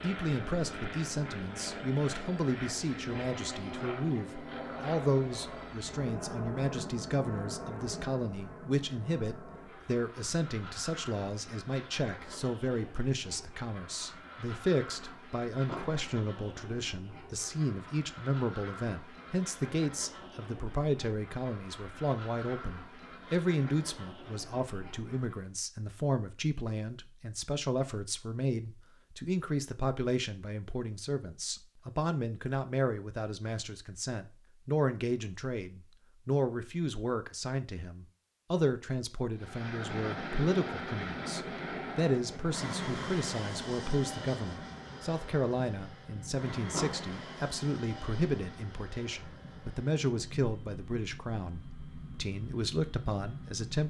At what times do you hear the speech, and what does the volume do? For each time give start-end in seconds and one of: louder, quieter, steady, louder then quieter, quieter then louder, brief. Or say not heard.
0.0-53.8 steady.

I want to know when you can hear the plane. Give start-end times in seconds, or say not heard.
0.0-25.5, 39.4-53.8.